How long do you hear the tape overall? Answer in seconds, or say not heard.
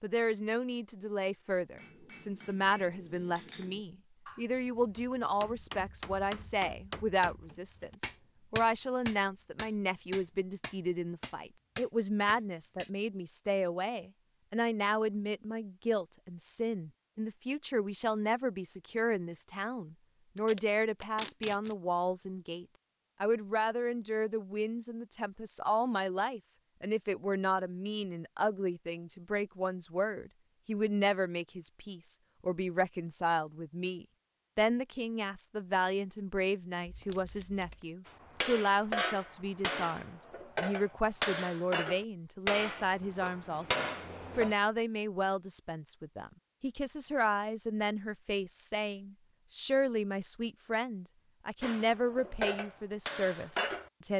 2 s.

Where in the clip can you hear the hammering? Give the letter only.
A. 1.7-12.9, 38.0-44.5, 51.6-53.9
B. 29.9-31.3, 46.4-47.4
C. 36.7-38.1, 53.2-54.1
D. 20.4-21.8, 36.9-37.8
A.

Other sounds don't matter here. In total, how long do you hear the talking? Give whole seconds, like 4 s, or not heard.
54 s.